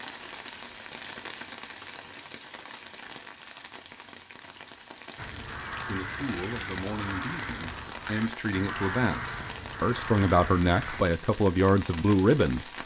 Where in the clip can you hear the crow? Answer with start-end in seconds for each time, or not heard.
5.2-11.1.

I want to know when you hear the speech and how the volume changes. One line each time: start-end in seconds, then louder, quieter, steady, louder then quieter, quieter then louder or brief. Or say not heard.
5.8-12.7 louder.